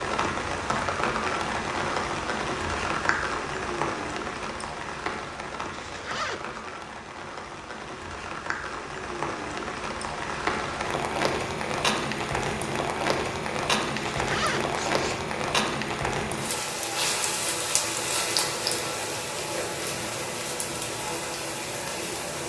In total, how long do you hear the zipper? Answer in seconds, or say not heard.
2 s.